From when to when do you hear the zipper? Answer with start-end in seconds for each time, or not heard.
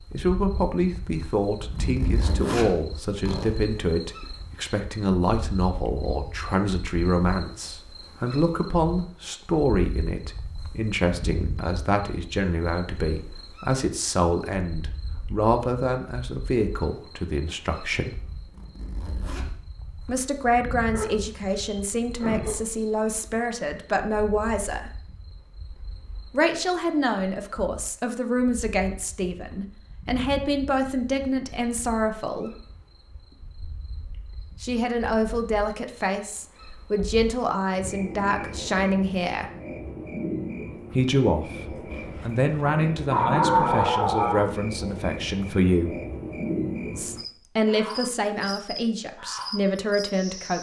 1.6-3.5, 18.4-19.6, 41.9-42.6.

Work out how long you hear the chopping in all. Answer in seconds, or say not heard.
not heard.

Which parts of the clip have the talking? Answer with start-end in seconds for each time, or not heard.
0.1-18.2, 20.1-24.9, 26.3-32.5, 34.6-39.5, 40.9-46.0, 46.9-50.5.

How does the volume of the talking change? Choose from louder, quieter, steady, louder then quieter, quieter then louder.
steady.